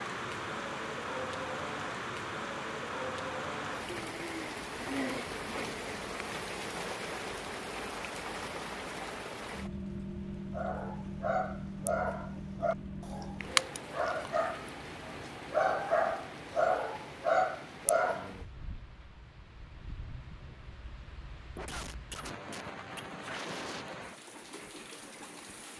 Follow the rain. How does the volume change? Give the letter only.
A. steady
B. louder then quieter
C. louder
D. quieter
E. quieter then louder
D.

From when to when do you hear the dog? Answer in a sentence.
You can hear the dog from 10.5 to 18.3 s.